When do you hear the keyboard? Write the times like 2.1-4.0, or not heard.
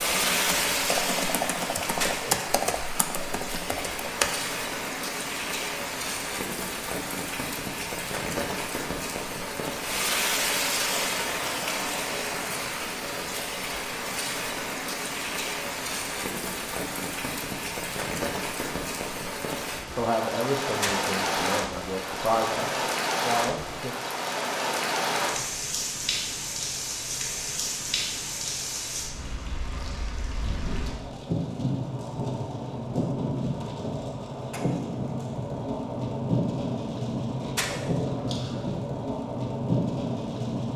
0.0-4.5.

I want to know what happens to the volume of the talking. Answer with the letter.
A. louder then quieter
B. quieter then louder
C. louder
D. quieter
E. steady
B.